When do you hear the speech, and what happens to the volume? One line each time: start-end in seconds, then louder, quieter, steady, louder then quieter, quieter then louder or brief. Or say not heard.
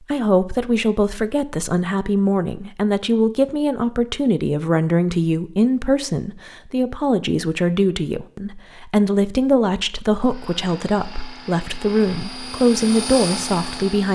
0.1-14.1 steady.